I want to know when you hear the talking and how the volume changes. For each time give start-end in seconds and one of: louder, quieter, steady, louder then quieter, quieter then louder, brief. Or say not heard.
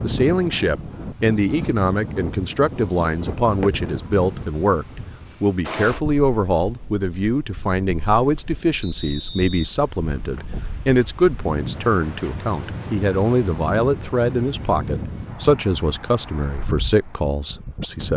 0.0-18.1 steady.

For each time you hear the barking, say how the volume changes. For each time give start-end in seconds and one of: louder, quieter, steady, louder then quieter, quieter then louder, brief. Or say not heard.
not heard.